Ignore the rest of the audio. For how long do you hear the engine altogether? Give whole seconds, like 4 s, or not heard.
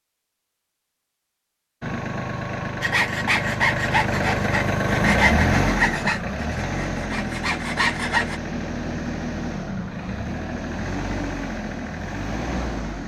11 s.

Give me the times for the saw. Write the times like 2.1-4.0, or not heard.
2.8-8.4.